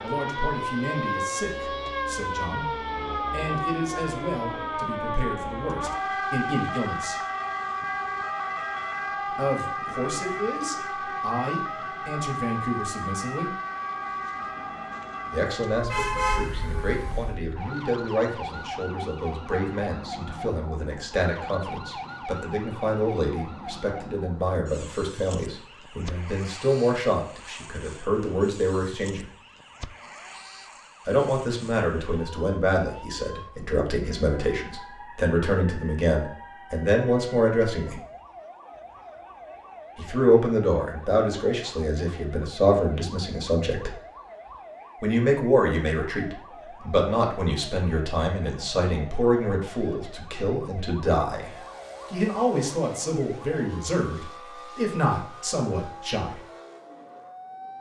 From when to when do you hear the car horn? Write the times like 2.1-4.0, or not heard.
15.9-17.3.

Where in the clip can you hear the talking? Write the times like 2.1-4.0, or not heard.
0.0-7.2, 9.3-13.6, 15.3-29.3, 31.1-38.0, 40.0-44.0, 45.0-56.4.